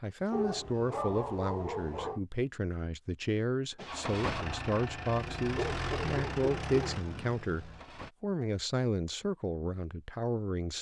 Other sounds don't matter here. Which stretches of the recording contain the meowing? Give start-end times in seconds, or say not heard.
not heard.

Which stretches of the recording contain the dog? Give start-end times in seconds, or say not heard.
0.3-2.2, 5.5-7.4.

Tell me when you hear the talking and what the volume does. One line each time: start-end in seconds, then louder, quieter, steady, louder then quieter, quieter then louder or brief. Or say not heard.
0.0-10.7 steady.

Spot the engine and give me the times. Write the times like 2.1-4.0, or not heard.
3.8-8.2.